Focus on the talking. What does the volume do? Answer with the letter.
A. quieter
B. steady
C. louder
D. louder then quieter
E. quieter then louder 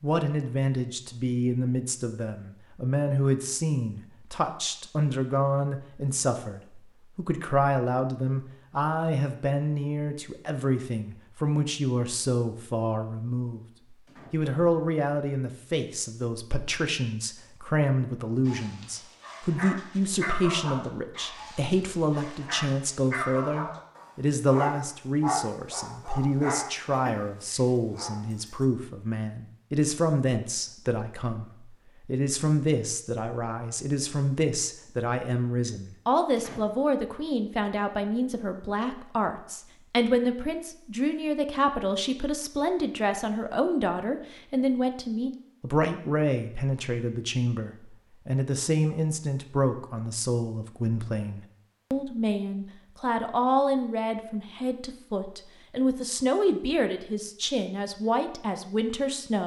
B.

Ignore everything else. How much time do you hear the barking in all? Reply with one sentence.
You can hear the barking for 10 seconds altogether.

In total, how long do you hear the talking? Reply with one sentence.
The talking can be heard for 59 seconds in total.